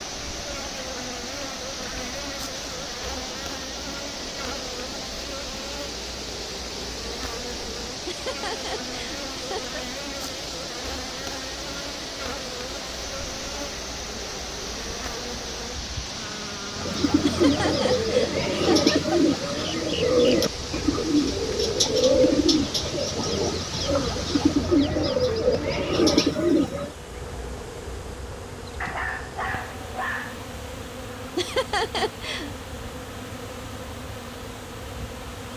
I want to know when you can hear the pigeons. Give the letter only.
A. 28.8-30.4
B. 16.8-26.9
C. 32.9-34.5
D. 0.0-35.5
B.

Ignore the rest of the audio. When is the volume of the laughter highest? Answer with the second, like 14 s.
32 s.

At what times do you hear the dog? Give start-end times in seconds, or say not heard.
28.8-30.4.